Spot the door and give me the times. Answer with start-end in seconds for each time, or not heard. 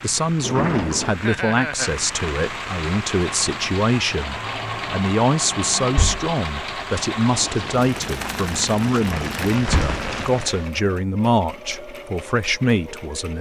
0.4-1.1, 5.8-6.3, 9.6-10.1.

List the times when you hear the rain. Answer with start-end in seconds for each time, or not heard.
0.0-10.7.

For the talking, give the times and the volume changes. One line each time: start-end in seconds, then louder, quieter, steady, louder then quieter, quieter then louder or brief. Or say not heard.
0.0-13.3 steady.